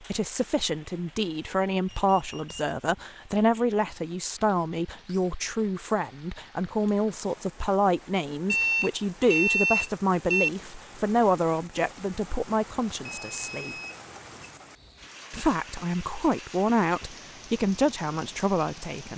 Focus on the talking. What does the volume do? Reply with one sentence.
The volume of the talking stays about the same.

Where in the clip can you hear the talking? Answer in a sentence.
The talking can be heard from 0.1 to 13.8 s and from 15.3 to 19.1 s.